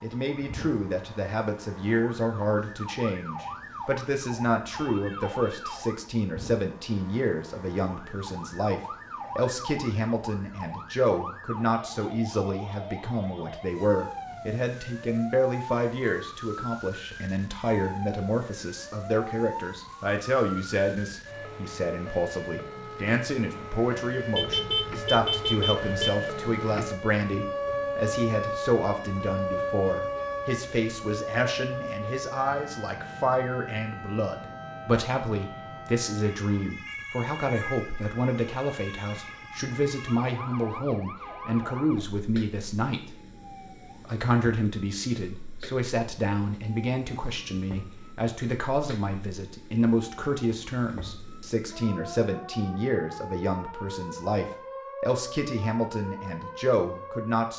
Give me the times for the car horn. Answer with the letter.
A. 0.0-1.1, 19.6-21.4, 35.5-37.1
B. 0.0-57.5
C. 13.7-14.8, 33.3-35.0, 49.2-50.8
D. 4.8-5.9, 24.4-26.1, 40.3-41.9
D.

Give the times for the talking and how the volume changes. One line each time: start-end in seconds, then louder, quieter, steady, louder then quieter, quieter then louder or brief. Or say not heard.
0.0-57.5 steady.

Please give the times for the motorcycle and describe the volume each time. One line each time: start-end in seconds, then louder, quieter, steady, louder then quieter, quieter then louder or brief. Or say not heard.
not heard.